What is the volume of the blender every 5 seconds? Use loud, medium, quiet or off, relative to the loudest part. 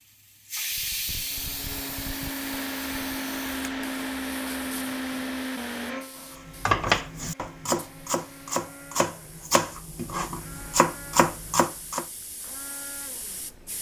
loud, medium, quiet.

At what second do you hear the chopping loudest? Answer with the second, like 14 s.
7 s.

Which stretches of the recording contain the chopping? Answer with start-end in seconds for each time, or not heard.
6.6-12.1.